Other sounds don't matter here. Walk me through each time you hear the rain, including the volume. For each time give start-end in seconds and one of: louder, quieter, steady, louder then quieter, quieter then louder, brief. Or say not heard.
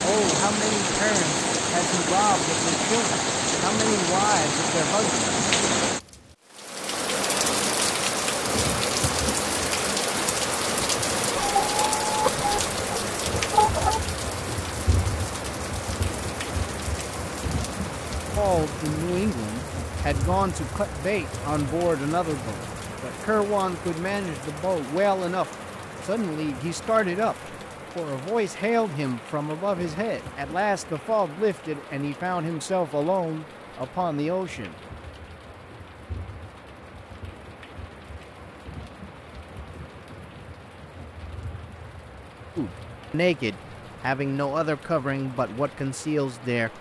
0.0-46.7 quieter.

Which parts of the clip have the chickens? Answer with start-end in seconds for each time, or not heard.
11.3-14.0.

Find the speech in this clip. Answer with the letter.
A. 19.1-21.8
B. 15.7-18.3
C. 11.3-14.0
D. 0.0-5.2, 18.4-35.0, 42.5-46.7
D.